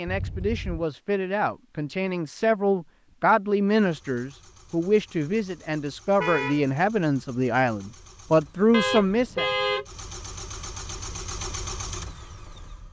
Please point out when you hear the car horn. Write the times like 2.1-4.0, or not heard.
0.1-0.8, 6.2-6.7, 8.7-9.8.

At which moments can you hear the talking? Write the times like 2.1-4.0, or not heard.
0.0-9.4.